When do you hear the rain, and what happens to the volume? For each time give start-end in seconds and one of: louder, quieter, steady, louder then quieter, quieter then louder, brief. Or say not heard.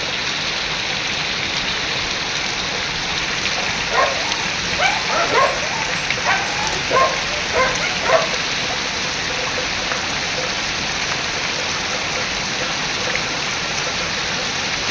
0.0-14.8 steady.